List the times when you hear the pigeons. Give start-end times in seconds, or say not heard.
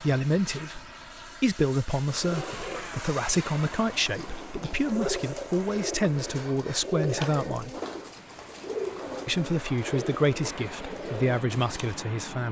2.0-12.1.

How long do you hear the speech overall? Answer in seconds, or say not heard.
11 s.